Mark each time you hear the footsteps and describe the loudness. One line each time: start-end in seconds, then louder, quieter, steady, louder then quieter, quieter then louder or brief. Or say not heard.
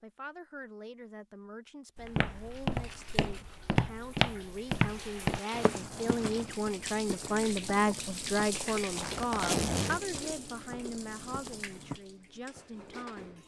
1.9-12.0 quieter.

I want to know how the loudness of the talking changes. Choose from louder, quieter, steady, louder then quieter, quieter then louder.
louder then quieter.